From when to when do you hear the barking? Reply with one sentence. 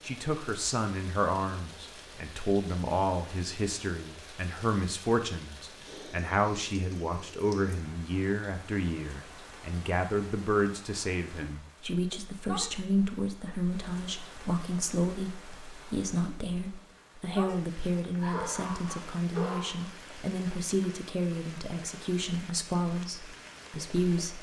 You can hear the barking from 18.2 to 19.9 s.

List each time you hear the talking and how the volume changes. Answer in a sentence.
You can hear the talking from 0.0 to 24.3 s, at a steady volume.